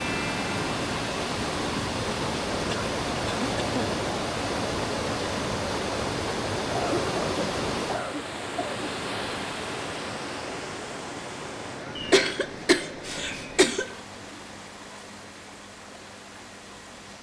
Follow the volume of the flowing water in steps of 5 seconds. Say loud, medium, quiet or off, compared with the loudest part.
loud, loud, medium, quiet.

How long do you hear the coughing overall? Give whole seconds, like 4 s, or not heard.
5 s.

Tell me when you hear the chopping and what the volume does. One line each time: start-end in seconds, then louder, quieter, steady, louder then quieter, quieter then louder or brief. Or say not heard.
not heard.